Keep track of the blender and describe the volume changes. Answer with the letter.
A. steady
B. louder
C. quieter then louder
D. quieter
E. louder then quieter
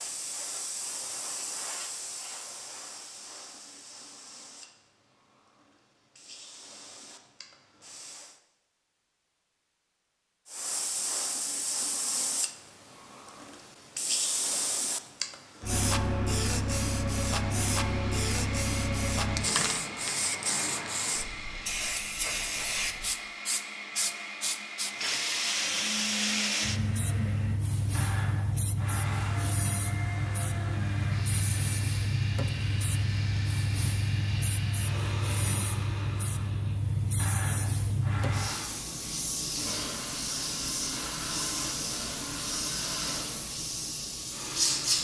A.